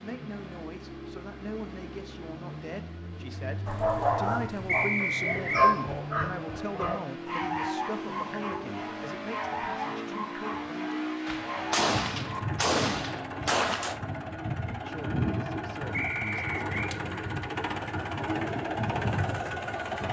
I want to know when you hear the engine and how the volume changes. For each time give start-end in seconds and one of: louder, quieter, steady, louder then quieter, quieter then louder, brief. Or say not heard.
0.0-20.0 louder.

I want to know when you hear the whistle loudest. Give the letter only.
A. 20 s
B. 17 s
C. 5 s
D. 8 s
C.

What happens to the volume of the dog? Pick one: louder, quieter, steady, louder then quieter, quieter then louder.
quieter.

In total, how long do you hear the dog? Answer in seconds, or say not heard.
9 s.